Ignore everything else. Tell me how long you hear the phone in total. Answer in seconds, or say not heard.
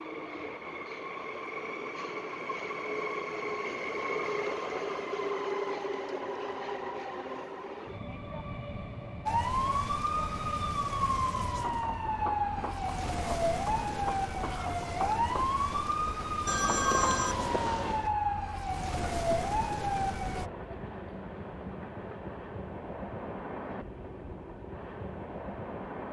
2 s.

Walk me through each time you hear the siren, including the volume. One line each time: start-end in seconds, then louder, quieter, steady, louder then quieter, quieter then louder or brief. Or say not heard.
9.2-20.5 steady.